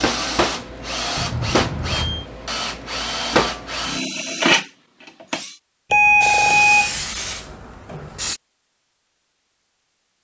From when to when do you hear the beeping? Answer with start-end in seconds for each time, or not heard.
1.1-2.2, 5.9-7.0.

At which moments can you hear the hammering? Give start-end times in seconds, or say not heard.
not heard.